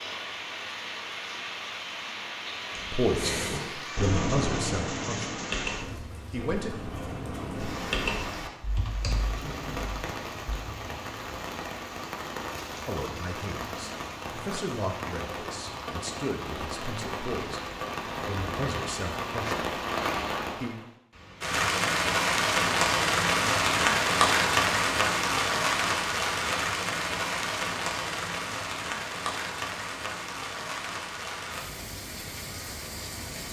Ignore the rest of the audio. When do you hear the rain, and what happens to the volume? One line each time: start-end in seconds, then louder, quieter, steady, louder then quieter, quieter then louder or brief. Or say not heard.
0.0-33.4 louder then quieter.